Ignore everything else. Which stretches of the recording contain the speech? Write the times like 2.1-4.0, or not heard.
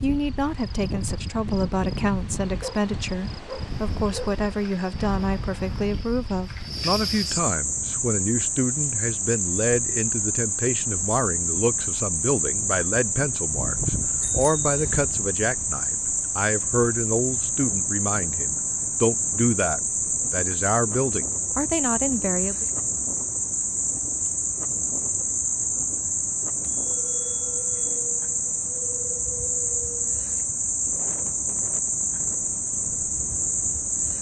0.0-22.6.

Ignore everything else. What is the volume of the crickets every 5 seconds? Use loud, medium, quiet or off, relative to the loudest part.
quiet, loud, loud, loud, loud, loud, loud.